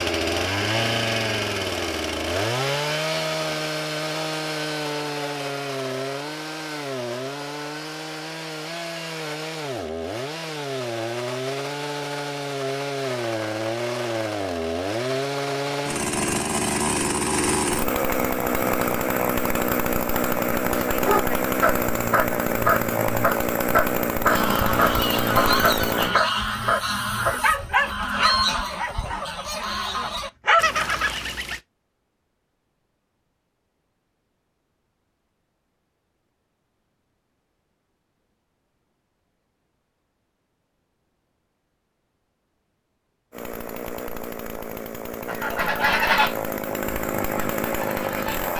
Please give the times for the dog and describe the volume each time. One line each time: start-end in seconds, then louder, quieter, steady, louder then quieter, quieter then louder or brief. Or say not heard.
20.9-30.8 quieter.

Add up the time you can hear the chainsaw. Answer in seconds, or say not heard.
31 s.